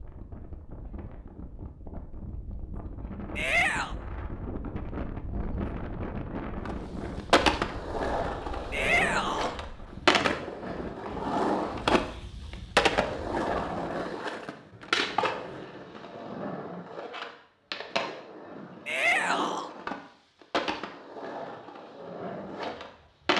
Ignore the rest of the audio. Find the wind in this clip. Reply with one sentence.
The wind can be heard from 0.0 to 14.1 s.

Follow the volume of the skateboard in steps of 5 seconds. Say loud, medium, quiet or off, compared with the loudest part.
off, loud, loud, medium, medium.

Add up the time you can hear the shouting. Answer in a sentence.
The shouting can be heard for 2 seconds in total.